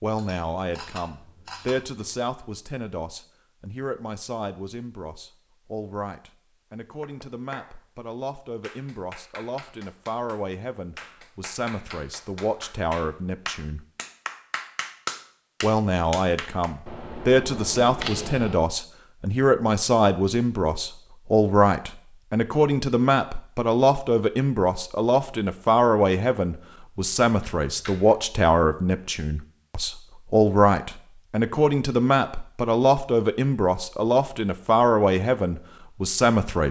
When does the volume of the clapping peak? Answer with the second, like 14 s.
15 s.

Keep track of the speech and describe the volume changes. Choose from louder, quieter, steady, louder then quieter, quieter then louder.
louder.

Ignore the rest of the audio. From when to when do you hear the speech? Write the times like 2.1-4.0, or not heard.
0.0-13.8, 15.6-36.6.